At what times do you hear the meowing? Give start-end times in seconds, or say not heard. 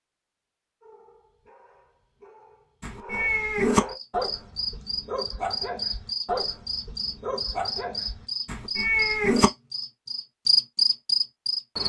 2.8-3.8, 8.4-9.5.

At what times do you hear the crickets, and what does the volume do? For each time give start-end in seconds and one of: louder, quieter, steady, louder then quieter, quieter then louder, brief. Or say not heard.
3.9-11.8 louder.